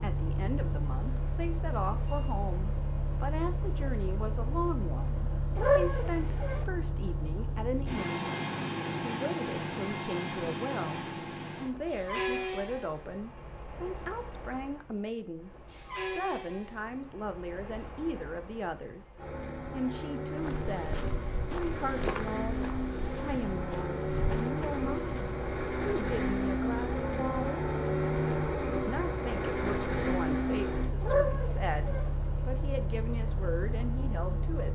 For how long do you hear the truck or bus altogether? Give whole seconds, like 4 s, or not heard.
35 s.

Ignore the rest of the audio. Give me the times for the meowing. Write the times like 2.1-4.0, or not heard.
5.5-6.7, 31.0-32.1.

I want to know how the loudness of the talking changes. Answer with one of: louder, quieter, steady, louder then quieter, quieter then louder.
steady.